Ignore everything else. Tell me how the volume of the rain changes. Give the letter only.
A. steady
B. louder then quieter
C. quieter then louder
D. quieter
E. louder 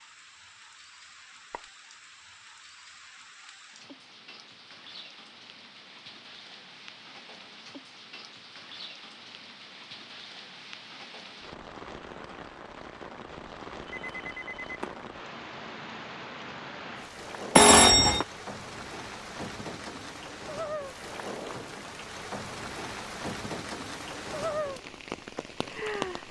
E.